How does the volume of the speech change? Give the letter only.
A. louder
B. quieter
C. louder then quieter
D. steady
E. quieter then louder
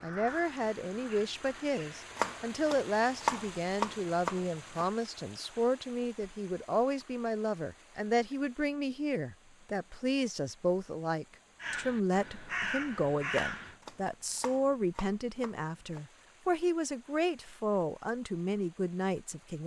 D.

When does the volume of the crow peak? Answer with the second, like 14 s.
13 s.